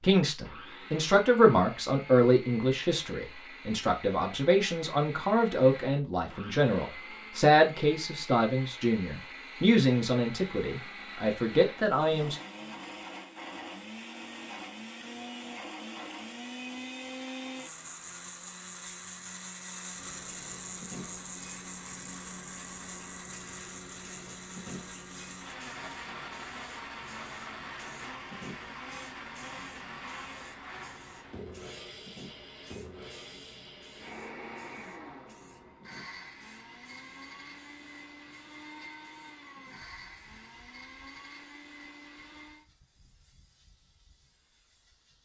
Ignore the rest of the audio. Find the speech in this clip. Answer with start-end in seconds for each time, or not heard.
0.0-12.3.